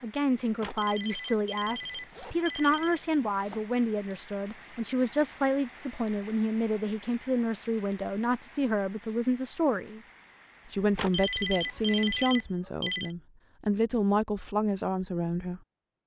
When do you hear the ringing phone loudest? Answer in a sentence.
The volume of the ringing phone peaks at 12 seconds.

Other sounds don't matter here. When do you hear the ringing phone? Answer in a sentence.
You can hear the ringing phone from 0.6 to 3.0 s and from 10.9 to 13.2 s.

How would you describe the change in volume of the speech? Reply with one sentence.
The volume of the speech stays about the same.